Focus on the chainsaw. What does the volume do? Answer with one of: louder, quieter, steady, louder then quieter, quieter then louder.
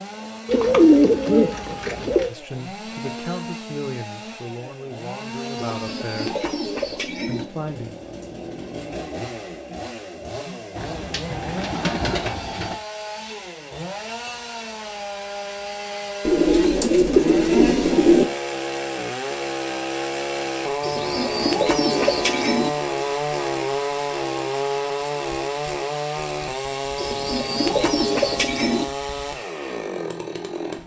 louder.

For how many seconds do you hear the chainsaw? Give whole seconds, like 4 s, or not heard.
31 s.